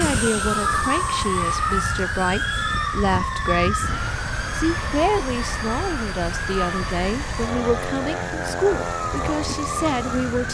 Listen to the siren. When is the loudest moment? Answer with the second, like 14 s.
1 s.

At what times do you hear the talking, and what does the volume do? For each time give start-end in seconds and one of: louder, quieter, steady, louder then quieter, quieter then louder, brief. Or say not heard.
0.0-10.4 steady.